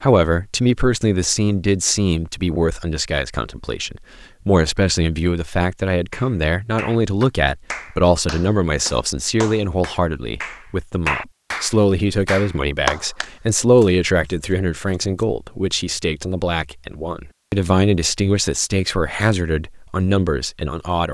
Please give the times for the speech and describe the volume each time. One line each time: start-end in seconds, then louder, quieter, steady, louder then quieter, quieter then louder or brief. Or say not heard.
0.0-21.0 steady.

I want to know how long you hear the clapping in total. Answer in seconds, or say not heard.
7 s.